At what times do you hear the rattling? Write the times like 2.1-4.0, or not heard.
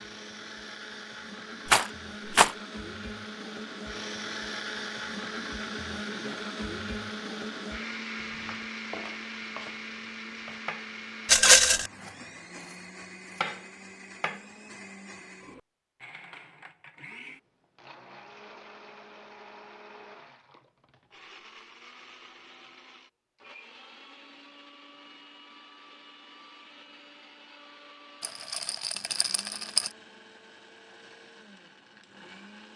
1.6-2.5, 11.2-11.9, 28.2-29.9.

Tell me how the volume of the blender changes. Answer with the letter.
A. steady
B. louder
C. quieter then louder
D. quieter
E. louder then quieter
D.